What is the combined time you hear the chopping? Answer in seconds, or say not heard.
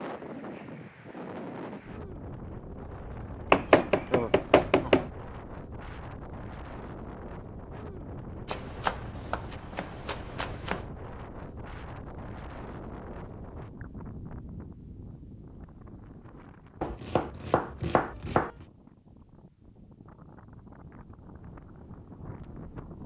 6 s.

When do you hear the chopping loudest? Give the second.
4 s.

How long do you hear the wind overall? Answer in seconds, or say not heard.
23 s.